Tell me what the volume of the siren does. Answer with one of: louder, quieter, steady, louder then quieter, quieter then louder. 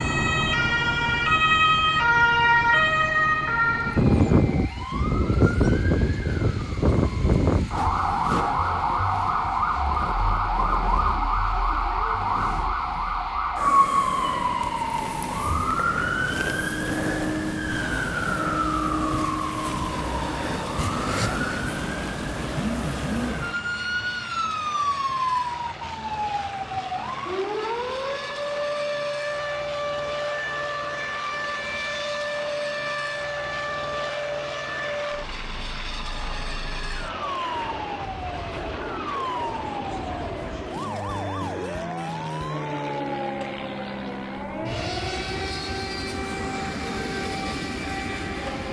quieter.